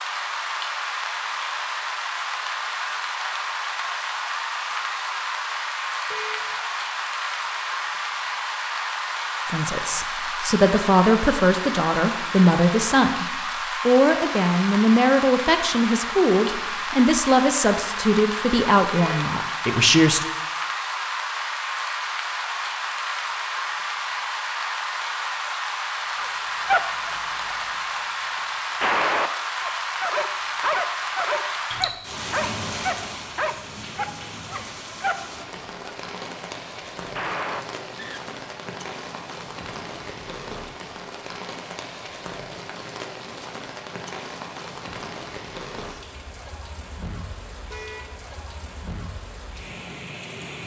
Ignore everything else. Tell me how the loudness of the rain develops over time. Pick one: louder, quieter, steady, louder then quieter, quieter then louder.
quieter.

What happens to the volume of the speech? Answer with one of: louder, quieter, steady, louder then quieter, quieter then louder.
steady.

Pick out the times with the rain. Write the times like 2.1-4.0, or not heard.
0.0-50.6.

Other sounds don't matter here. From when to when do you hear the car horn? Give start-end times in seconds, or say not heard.
6.1-6.5, 18.9-19.4, 47.7-48.1.